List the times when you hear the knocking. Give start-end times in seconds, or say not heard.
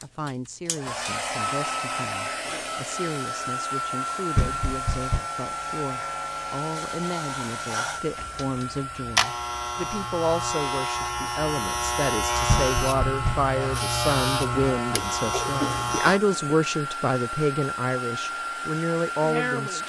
4.3-5.2, 12.4-13.5.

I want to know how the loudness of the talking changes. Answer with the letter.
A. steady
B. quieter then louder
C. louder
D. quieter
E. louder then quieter
C.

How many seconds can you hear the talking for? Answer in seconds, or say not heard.
20 s.